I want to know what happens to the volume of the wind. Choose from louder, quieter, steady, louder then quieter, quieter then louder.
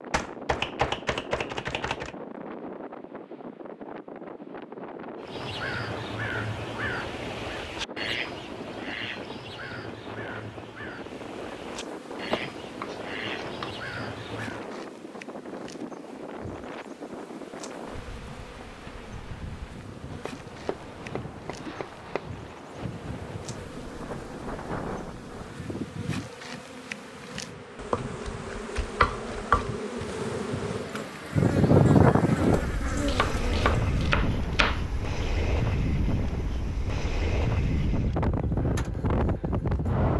louder.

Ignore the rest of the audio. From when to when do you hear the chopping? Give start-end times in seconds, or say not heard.
0.1-2.1, 12.3-13.8, 20.1-22.2, 27.8-29.7, 32.9-34.8.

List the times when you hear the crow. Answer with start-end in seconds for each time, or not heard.
5.2-14.7.